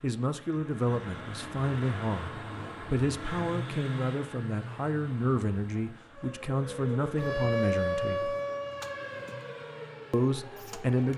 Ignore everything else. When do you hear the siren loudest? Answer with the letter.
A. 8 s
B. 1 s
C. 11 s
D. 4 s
A.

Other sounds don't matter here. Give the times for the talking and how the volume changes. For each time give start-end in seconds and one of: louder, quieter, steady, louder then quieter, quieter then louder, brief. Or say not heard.
0.0-8.3 steady
10.1-11.1 brief.